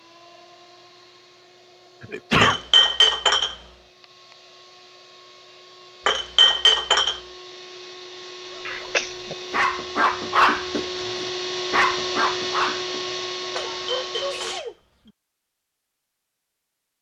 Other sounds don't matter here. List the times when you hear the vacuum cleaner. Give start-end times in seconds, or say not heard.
0.0-14.6.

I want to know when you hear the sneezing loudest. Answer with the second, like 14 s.
2 s.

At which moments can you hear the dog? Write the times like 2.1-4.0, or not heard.
8.5-14.4.